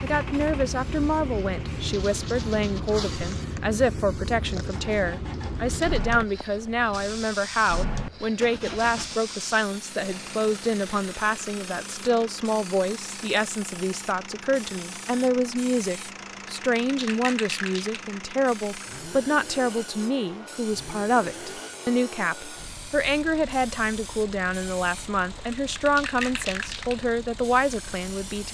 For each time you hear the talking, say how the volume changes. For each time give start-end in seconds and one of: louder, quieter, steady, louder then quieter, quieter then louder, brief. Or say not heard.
0.0-28.4 steady.